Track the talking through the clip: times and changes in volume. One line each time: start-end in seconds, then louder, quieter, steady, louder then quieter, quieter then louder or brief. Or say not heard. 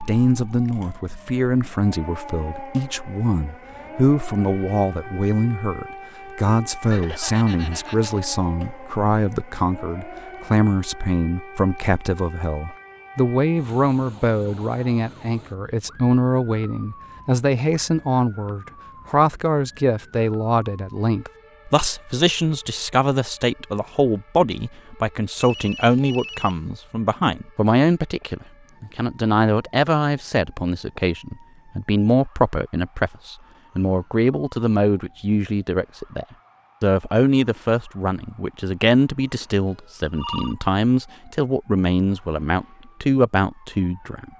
0.0-44.3 steady.